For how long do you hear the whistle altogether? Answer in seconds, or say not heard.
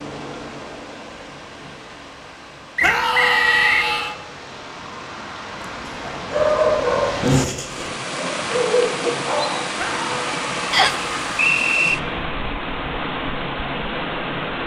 2 s.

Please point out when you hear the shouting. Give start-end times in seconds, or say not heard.
2.8-4.2, 9.8-11.4.